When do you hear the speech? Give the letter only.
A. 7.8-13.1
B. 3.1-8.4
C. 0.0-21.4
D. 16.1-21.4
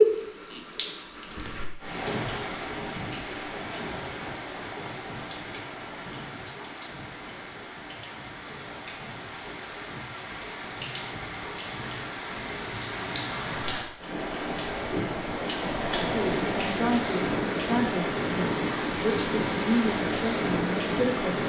D.